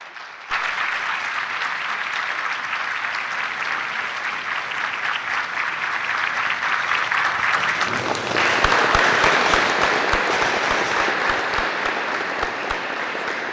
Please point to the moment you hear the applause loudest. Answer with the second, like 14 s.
9 s.